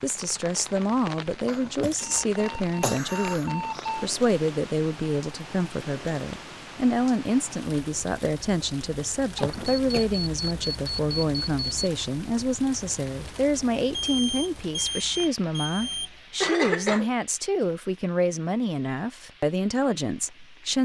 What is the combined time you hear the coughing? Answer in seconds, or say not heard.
4 s.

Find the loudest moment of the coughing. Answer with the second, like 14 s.
17 s.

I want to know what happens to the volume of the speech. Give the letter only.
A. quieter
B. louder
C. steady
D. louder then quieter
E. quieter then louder
C.